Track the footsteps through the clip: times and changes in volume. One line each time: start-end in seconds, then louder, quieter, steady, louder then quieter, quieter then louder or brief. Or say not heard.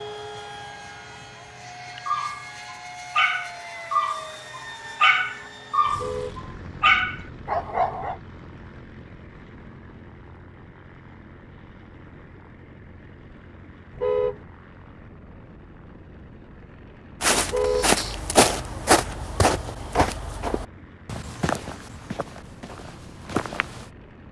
17.2-23.9 quieter.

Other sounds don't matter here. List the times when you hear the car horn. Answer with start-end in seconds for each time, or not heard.
5.9-6.4, 13.9-14.4, 17.4-17.9.